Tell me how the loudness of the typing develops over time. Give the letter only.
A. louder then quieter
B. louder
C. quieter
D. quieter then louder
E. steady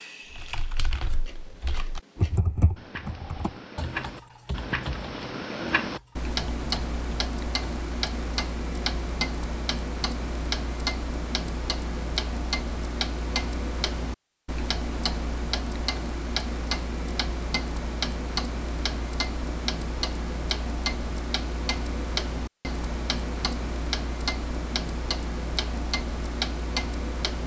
A.